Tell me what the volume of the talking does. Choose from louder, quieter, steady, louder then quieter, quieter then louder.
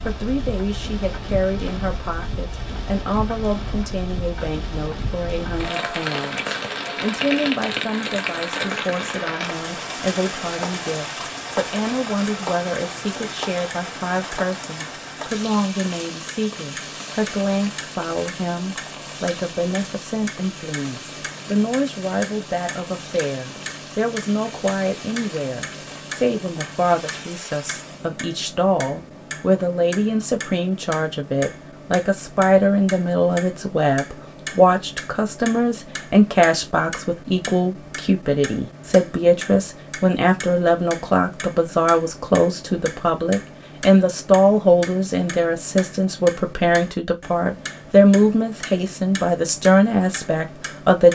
louder.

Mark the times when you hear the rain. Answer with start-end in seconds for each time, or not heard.
0.0-28.2.